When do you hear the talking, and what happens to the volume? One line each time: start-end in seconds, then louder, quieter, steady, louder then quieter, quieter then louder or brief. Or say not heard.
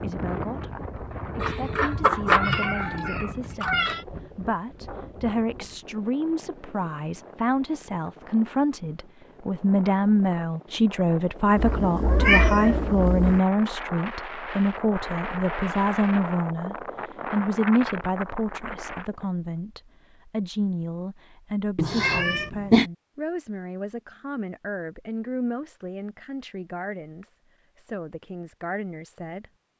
0.0-29.4 louder then quieter.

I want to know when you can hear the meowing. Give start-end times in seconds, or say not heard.
1.4-4.0, 11.6-13.4, 21.8-22.9.